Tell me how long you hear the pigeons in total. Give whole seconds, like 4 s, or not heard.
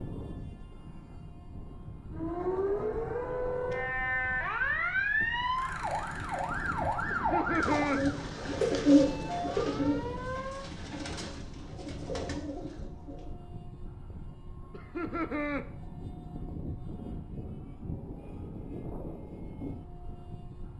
6 s.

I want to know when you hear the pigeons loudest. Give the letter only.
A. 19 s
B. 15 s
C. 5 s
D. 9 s
D.